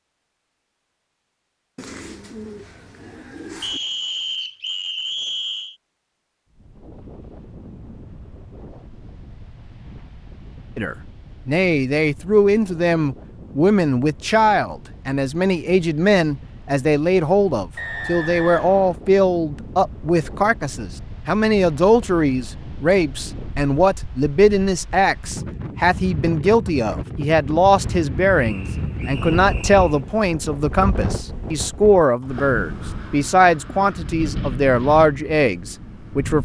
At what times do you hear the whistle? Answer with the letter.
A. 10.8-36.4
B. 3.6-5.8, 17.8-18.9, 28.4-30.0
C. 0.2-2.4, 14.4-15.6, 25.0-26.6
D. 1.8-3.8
B.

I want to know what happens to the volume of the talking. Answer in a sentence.
The volume of the talking stays about the same.